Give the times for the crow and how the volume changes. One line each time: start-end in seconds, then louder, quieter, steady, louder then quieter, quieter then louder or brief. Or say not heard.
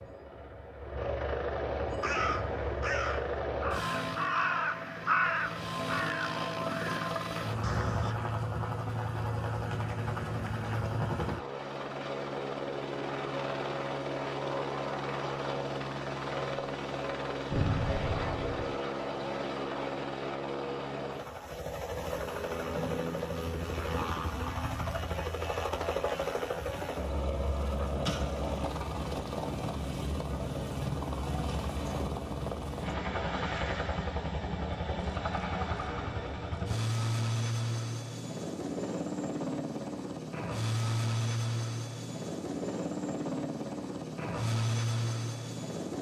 1.9-8.2 louder then quieter.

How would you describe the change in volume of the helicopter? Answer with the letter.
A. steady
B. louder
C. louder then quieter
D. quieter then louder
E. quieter
A.